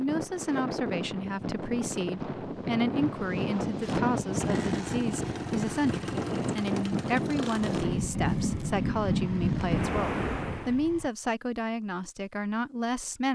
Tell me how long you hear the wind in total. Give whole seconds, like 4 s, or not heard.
11 s.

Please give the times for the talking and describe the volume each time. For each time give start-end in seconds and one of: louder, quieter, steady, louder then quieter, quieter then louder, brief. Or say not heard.
0.0-13.2 steady.